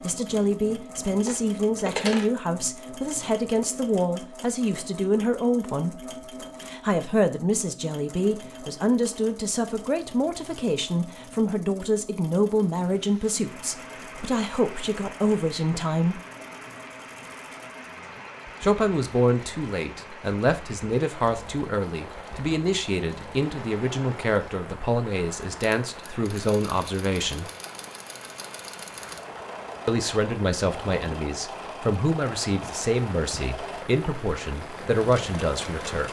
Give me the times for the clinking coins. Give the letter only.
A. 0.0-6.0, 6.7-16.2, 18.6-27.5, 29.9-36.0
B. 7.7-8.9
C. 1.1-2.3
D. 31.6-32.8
C.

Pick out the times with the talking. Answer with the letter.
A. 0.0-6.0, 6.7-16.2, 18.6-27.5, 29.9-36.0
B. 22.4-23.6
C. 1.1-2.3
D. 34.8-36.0
A.